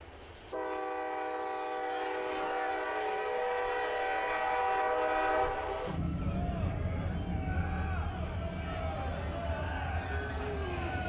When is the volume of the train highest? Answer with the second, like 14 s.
5 s.